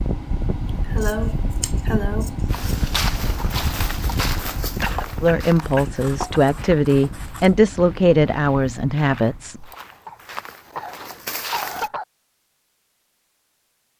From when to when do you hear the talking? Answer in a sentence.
You can hear the talking from 5.2 to 9.7 s.